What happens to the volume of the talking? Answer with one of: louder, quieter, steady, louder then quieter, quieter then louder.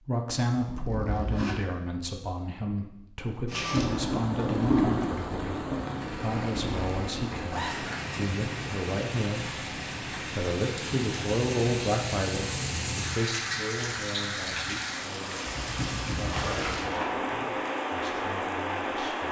quieter.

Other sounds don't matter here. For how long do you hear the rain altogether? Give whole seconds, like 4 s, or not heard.
16 s.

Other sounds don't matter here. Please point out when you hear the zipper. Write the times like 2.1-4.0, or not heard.
0.5-1.6, 7.4-8.2, 16.3-17.1.